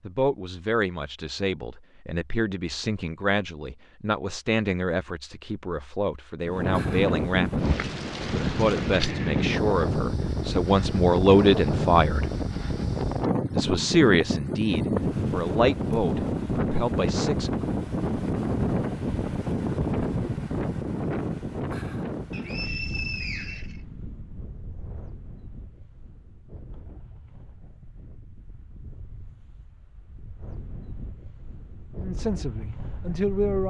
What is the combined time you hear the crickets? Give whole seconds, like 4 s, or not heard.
not heard.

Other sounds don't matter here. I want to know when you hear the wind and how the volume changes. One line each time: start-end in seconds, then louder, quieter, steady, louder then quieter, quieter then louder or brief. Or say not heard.
6.5-33.6 quieter.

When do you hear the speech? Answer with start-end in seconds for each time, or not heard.
0.1-12.2, 13.6-17.7, 32.0-33.6.